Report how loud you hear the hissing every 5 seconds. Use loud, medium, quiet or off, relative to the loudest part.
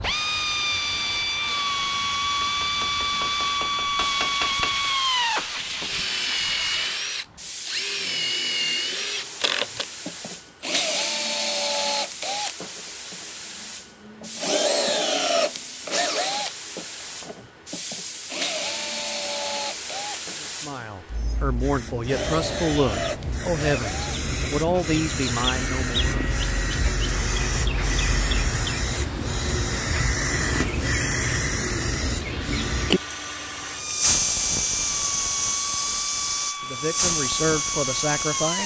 medium, medium, quiet, medium, medium, loud, loud, loud.